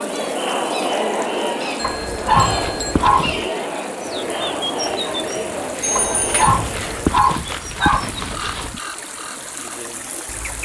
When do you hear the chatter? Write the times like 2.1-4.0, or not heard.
0.0-7.2.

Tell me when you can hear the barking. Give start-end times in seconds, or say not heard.
1.8-3.5, 6.0-8.8.